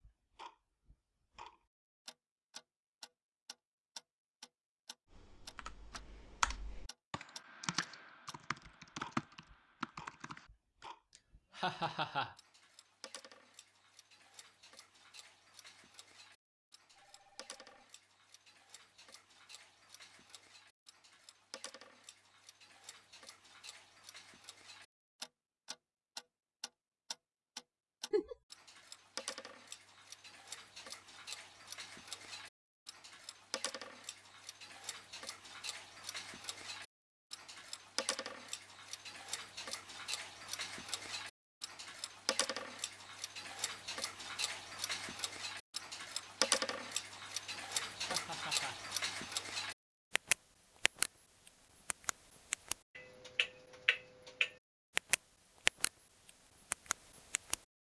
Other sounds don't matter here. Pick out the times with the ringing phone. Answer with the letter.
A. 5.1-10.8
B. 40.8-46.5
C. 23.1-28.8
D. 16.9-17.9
D.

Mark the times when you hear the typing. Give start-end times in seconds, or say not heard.
5.1-10.8.